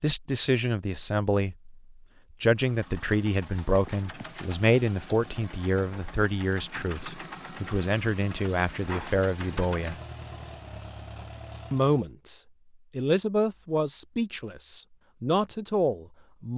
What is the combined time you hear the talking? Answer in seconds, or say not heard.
14 s.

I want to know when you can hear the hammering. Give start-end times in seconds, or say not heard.
not heard.